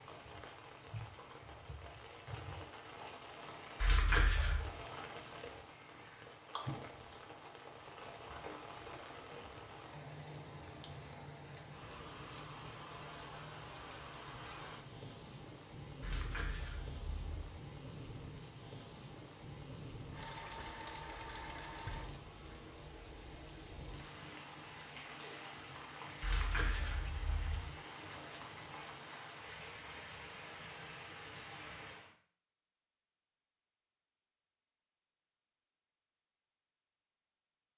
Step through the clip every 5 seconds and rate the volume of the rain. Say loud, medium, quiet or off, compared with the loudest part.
loud, loud, loud, loud, loud, loud, loud, off.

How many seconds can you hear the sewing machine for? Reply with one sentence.
The sewing machine can be heard for 2 seconds in total.